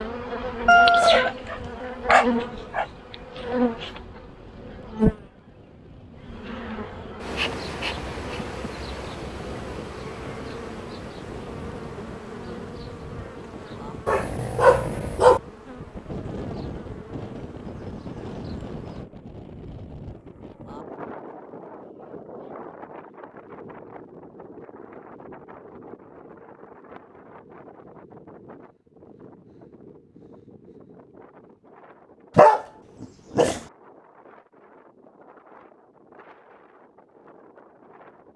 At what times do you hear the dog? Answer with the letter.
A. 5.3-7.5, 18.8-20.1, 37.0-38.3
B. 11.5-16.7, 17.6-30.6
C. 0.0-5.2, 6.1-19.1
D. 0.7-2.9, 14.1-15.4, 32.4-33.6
D.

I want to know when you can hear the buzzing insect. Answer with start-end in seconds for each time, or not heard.
0.0-5.2, 6.1-19.1.